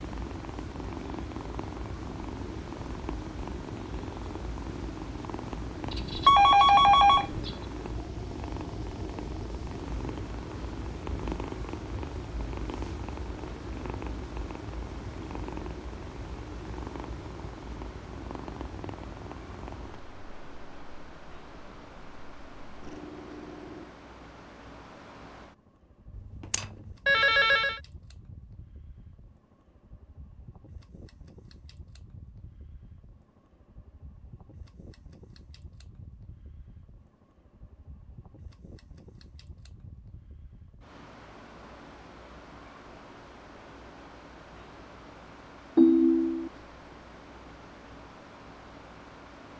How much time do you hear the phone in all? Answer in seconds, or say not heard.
4 s.